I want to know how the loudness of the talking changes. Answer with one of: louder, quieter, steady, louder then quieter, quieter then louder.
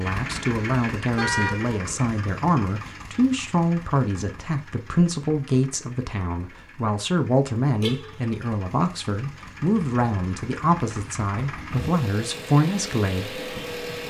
steady.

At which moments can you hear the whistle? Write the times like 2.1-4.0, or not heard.
not heard.